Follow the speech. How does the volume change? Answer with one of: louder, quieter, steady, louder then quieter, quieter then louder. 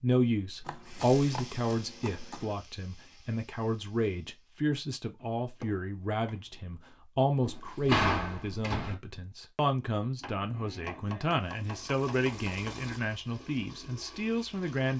steady.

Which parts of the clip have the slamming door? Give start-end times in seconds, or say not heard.
7.5-8.9.